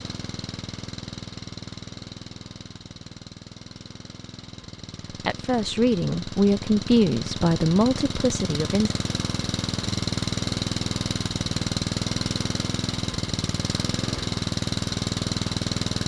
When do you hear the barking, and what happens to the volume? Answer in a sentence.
The barking can't be heard in this clip.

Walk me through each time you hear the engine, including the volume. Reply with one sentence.
You can hear the engine from 0.0 to 16.0 s, getting louder.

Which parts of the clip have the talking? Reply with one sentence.
The talking can be heard from 5.1 to 8.9 s.